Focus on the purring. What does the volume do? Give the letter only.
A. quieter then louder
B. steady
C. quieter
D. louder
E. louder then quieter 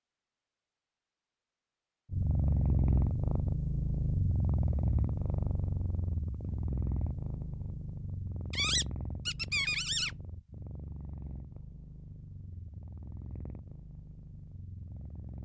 C.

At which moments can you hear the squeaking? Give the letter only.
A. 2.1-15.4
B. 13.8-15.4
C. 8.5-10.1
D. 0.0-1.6
C.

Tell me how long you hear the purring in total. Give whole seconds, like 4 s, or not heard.
13 s.